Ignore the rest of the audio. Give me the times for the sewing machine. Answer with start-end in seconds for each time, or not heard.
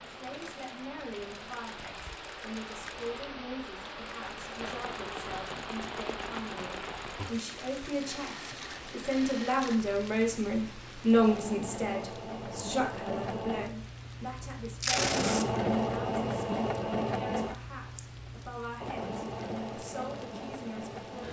0.0-21.2.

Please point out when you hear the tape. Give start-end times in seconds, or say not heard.
14.8-15.4.